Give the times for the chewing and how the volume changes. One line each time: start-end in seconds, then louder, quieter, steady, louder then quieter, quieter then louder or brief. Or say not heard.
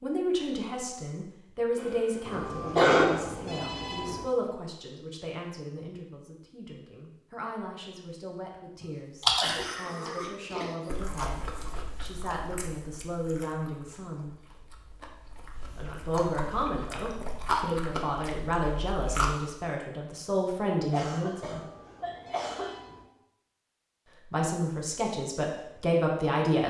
8.8-19.4 quieter then louder.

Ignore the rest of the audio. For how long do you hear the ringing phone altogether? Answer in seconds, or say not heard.
4 s.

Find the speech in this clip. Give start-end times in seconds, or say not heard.
0.0-14.3, 15.8-21.6, 24.2-26.6.